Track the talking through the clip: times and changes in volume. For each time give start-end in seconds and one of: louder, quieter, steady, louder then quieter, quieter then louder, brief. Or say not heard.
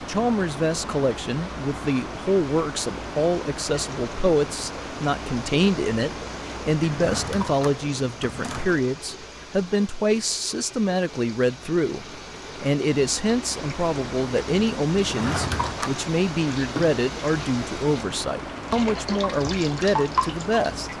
0.1-20.9 steady.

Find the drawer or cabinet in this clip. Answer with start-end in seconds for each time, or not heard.
6.8-8.8, 15.0-16.0.